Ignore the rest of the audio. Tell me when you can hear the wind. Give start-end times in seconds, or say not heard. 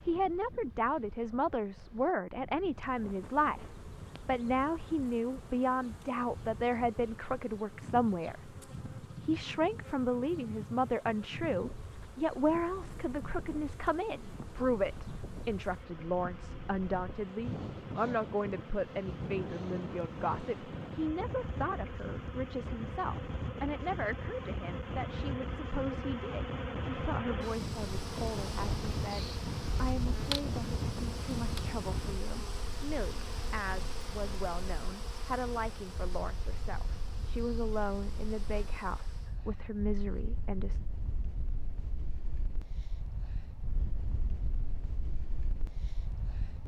0.0-46.6.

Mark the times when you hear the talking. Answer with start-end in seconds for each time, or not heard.
0.1-40.8.